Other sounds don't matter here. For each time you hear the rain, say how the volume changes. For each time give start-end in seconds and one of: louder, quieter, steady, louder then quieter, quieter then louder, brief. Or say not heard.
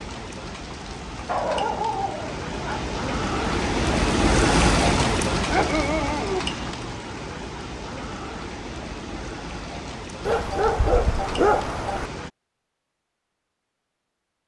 0.0-12.3 louder then quieter.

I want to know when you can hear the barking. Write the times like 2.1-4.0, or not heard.
1.2-2.9, 5.3-6.8, 10.2-12.1.